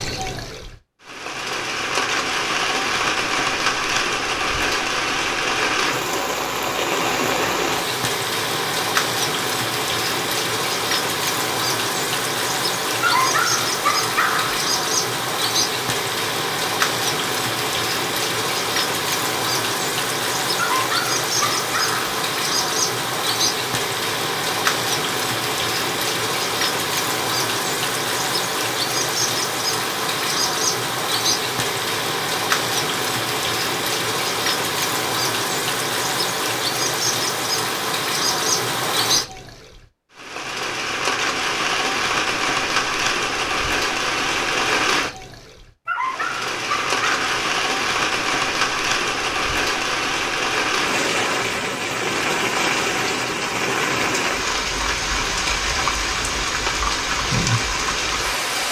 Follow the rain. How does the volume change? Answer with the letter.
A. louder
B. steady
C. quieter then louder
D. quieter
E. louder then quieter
B.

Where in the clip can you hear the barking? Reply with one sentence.
You can hear the barking from 13.0 to 14.6 s, from 20.6 to 22.1 s and from 45.9 to 47.2 s.